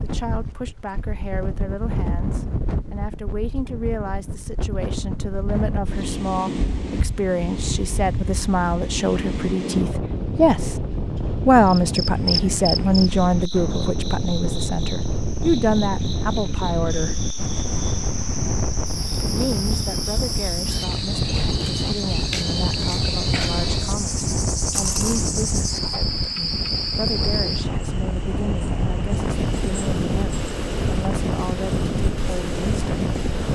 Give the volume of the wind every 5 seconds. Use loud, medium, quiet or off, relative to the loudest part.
medium, loud, loud, loud, loud, loud, loud.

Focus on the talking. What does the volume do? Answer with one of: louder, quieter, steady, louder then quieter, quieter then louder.
louder then quieter.